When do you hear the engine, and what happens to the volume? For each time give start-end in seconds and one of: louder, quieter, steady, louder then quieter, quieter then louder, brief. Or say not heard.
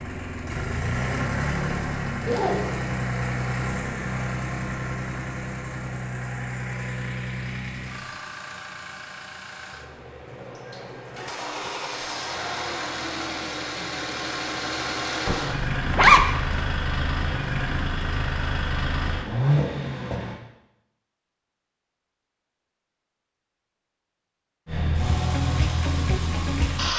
0.0-20.4 quieter then louder
24.6-26.9 brief.